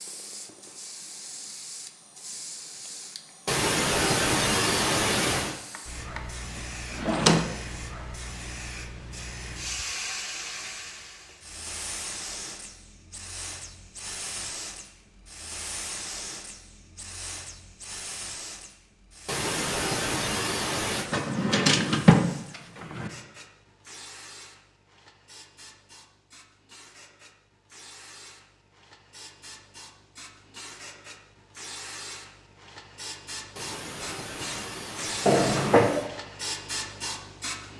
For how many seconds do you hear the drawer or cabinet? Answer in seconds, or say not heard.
3 s.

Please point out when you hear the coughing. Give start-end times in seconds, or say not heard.
3.5-5.5, 19.2-21.1, 33.5-36.1.